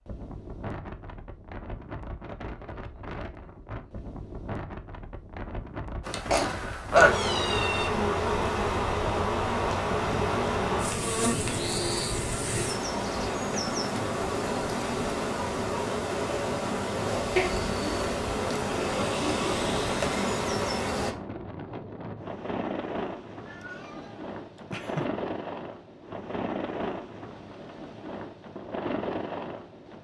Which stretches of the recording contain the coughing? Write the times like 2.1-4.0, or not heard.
6.3-7.2.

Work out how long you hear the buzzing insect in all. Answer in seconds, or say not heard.
15 s.